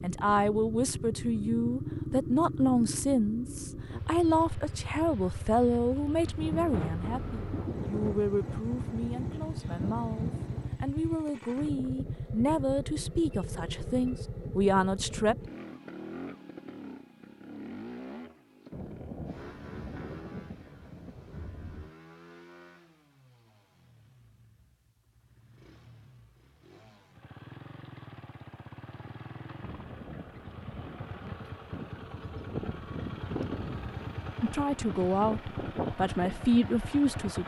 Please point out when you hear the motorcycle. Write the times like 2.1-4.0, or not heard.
0.0-37.4.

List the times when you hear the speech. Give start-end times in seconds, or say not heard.
0.0-15.3, 34.4-37.4.